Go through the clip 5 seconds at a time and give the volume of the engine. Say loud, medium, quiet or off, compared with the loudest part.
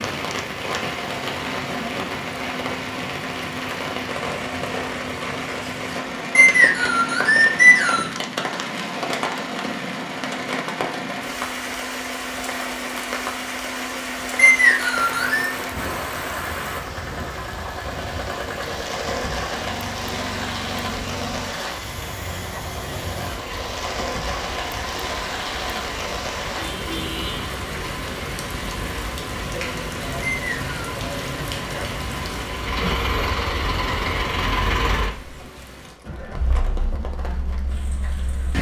medium, medium, medium, medium, medium, medium, loud, medium.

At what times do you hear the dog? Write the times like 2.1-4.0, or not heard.
not heard.